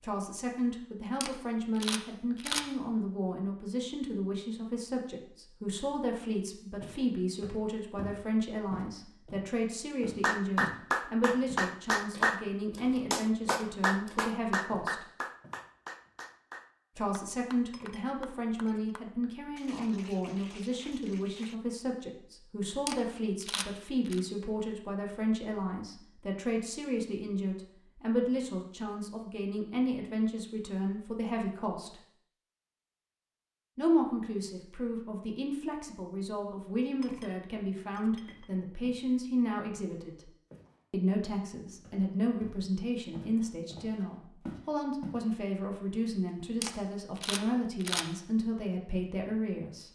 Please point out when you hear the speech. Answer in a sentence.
The speech can be heard from 0.0 to 15.1 s, from 16.9 to 32.0 s, from 33.8 to 40.3 s and from 40.9 to 49.8 s.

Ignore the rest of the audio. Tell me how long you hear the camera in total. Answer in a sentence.
The camera can be heard for 4 seconds in total.